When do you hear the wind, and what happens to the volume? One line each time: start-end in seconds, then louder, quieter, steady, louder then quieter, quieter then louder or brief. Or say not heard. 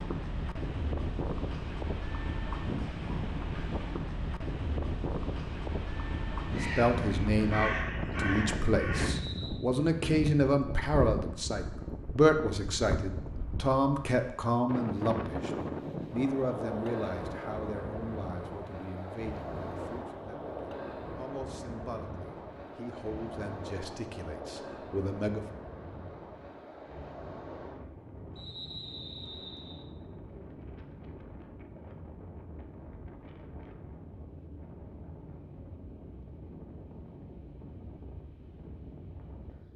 0.0-39.7 quieter.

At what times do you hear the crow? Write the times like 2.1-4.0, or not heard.
6.5-9.1.